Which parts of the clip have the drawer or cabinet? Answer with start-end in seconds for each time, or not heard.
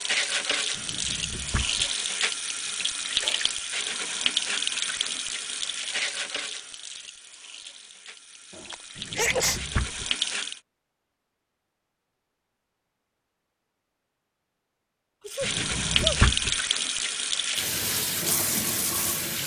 0.8-1.9, 8.9-10.1, 15.4-16.6.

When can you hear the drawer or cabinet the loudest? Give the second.
16 s.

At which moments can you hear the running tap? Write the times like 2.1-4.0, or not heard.
0.0-10.6, 15.2-19.4.